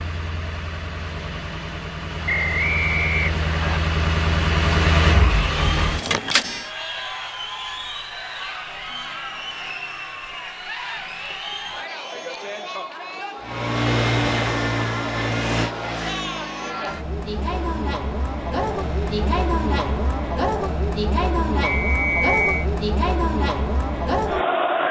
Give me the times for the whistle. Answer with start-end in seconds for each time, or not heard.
2.2-3.8, 21.6-22.6.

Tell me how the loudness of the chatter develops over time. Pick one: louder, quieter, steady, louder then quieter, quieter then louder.
louder.